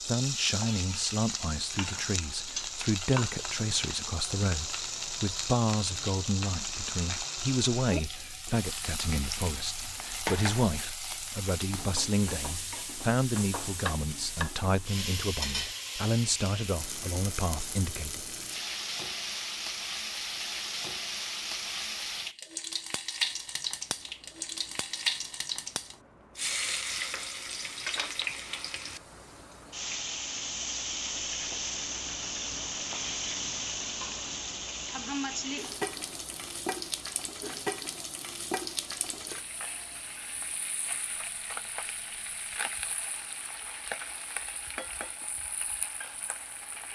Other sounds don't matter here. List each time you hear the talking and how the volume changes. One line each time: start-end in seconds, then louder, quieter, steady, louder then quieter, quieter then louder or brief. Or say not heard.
0.0-18.2 steady.